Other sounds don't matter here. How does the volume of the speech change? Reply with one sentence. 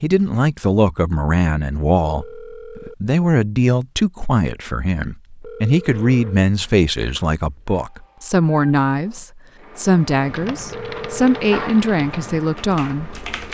The volume of the speech stays about the same.